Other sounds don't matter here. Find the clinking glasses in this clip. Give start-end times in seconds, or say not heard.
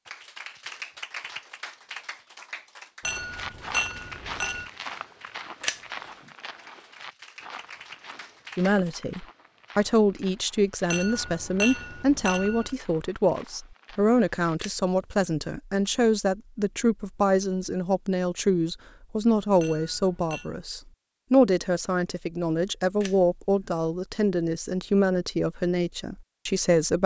3.0-4.7, 10.9-12.7, 19.6-20.5.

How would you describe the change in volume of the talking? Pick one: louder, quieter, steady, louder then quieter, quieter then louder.
steady.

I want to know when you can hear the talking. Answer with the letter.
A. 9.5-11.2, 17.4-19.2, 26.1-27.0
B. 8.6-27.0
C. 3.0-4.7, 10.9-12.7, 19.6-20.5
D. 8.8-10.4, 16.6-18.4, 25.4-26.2
B.